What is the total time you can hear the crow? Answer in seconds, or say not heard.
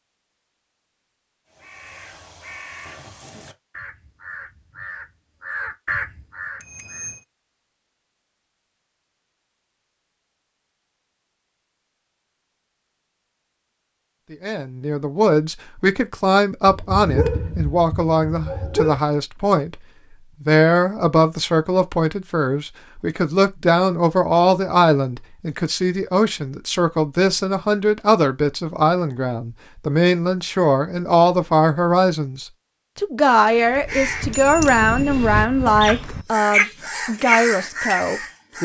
11 s.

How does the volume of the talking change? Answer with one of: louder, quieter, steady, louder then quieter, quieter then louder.
steady.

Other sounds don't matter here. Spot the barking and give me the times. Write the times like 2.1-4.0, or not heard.
16.6-19.0.